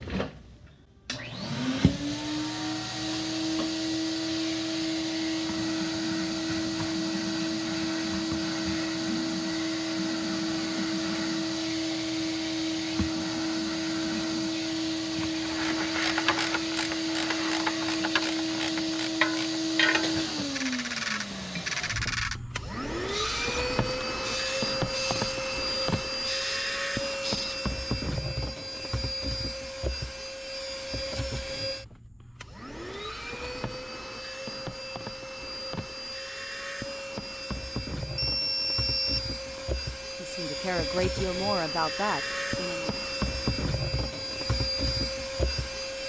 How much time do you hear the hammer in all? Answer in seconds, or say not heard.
not heard.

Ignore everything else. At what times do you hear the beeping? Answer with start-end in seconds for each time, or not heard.
38.1-39.6.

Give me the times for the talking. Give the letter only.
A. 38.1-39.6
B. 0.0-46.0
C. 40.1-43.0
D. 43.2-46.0
C.